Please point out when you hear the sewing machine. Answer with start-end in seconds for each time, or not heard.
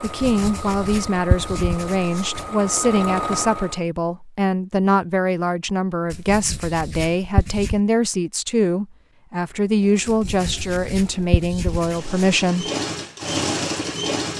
0.0-3.8, 9.7-14.3.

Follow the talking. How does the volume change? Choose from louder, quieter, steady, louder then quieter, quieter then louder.
steady.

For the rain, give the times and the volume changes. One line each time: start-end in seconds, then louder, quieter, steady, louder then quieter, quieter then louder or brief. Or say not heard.
not heard.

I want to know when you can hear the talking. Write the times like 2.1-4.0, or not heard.
0.0-12.7.